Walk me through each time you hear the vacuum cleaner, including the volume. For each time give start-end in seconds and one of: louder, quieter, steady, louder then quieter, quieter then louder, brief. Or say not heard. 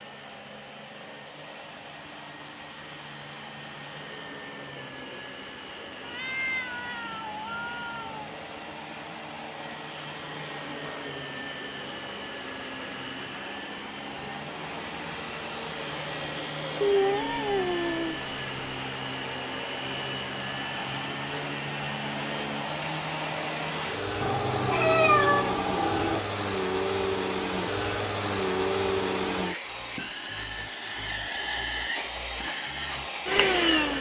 0.0-33.9 louder.